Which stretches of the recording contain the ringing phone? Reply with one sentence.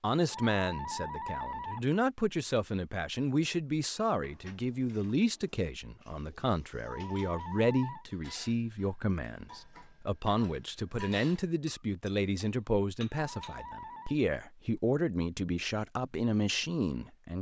The ringing phone can be heard from 0.3 to 1.9 s, from 6.8 to 8.1 s and from 13.1 to 14.2 s.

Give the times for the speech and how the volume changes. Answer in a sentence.
You can hear the speech from 0.0 to 17.3 s, at a steady volume.